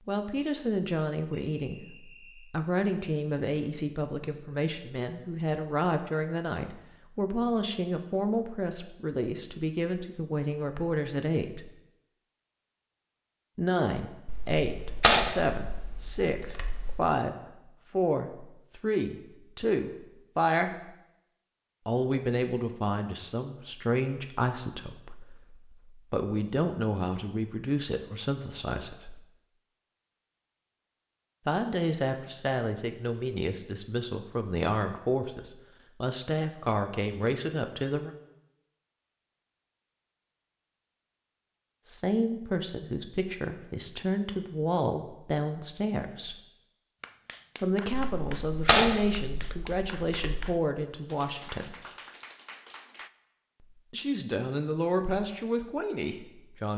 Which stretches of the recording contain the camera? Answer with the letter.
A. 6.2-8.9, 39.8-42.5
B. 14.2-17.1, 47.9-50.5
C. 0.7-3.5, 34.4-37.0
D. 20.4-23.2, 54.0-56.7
B.